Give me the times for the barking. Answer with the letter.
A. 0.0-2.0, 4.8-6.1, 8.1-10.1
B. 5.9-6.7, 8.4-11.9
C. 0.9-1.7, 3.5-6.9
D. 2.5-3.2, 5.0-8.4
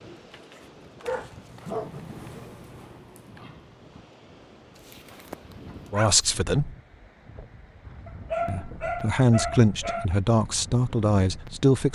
A.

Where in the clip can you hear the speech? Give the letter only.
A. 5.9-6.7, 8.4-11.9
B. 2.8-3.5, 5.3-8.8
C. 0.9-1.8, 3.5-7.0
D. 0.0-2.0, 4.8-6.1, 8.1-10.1
A.